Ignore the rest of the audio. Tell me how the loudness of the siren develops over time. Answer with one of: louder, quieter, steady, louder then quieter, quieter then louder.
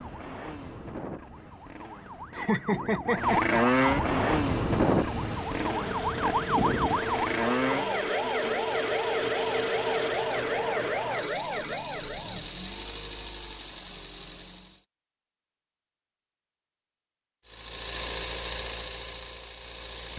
louder then quieter.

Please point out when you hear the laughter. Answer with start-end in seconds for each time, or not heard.
2.3-3.6.